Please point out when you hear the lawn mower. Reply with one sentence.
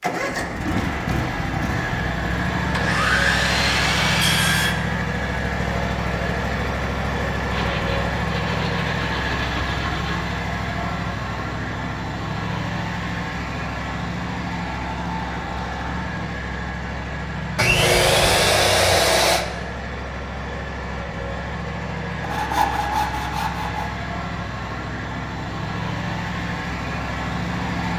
You can hear the lawn mower from 0.0 to 27.9 s.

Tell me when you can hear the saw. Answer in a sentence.
You can hear the saw from 2.7 to 4.8 s, from 7.5 to 10.2 s, from 17.6 to 19.4 s and from 22.2 to 23.9 s.